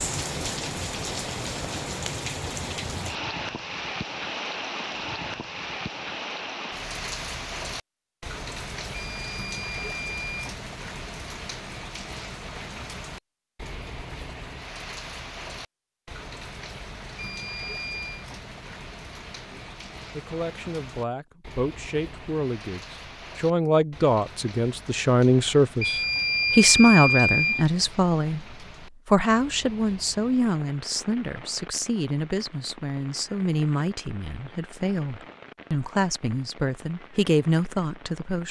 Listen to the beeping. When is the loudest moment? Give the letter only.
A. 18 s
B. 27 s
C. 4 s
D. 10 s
B.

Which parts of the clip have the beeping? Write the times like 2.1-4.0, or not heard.
8.9-10.5, 17.1-18.2, 25.8-27.6.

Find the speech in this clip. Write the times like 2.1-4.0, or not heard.
19.5-38.4.